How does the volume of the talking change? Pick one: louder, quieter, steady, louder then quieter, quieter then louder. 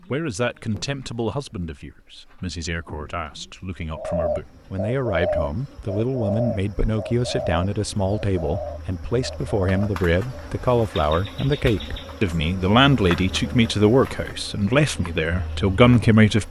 louder.